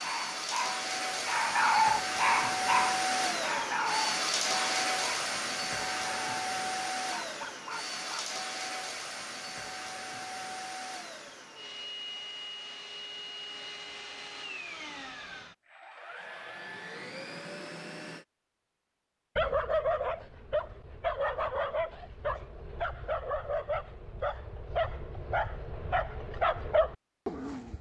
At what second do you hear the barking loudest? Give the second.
2 s.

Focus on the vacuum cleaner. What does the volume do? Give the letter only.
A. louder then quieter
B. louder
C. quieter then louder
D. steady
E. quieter
E.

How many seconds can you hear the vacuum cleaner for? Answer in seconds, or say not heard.
18 s.